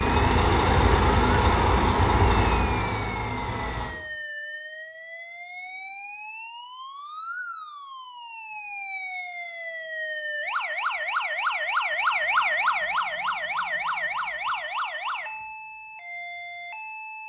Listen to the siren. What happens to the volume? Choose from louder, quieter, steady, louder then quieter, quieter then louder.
louder then quieter.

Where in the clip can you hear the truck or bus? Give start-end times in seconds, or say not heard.
0.0-3.9.